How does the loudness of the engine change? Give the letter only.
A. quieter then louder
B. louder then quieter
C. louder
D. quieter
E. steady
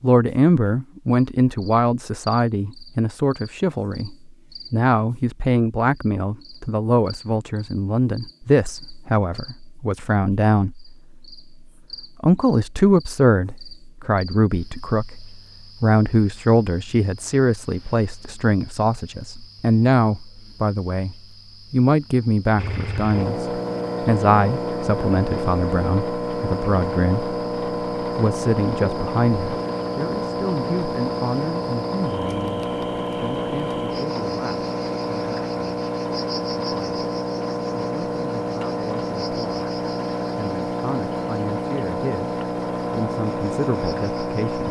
E.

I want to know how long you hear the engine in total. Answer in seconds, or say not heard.
22 s.